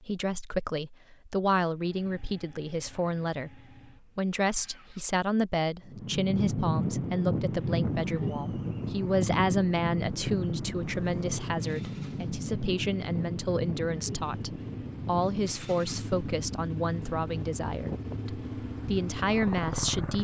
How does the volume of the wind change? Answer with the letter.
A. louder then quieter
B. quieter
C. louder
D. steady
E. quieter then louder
B.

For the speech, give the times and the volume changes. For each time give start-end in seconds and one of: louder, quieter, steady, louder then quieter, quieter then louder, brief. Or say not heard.
0.0-20.1 steady.